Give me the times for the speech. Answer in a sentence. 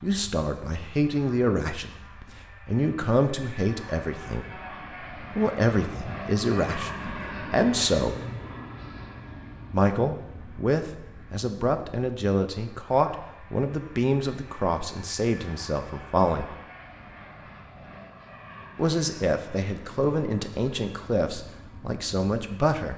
You can hear the speech from 0.0 to 1.9 s, from 2.6 to 4.6 s, from 5.3 to 8.2 s, from 9.7 to 16.6 s and from 18.8 to 22.9 s.